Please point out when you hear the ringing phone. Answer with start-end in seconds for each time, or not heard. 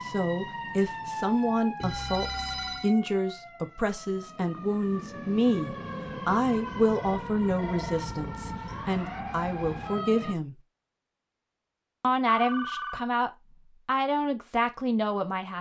1.8-3.0, 6.7-8.0, 12.3-13.1.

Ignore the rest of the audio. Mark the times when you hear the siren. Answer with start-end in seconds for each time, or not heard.
0.0-10.3.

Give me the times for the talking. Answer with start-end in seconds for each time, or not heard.
0.0-10.6, 12.0-15.5.